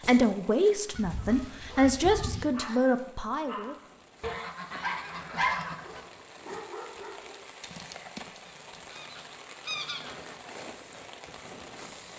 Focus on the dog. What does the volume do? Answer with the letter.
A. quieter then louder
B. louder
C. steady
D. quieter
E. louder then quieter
E.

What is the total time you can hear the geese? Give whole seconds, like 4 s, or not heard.
5 s.